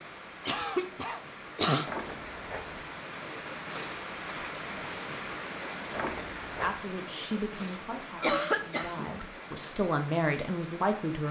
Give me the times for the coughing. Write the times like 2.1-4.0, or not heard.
0.5-1.9, 7.7-9.2.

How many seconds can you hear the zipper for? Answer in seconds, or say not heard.
2 s.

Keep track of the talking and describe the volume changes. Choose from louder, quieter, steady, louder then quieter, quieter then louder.
quieter then louder.